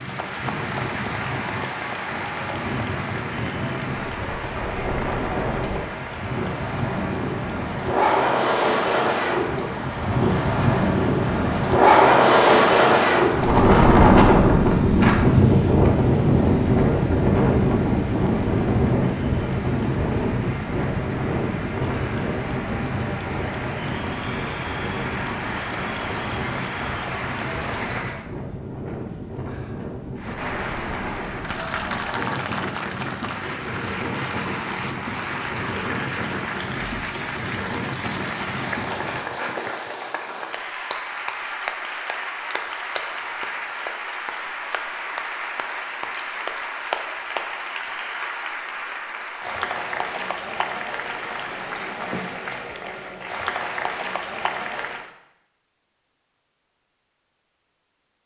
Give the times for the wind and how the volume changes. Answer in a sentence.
The wind can be heard from 0.0 to 39.2 s, getting louder then quieter.